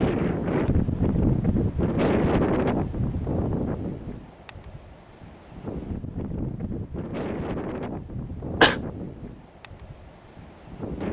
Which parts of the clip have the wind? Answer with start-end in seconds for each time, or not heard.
0.0-11.0.